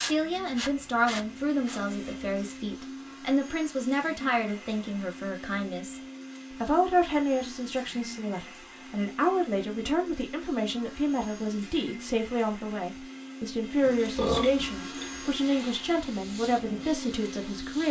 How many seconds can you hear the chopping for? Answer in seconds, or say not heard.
not heard.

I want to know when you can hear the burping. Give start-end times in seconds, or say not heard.
13.8-15.3.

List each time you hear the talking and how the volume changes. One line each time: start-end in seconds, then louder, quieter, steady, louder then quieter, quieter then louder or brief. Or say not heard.
0.0-17.8 steady.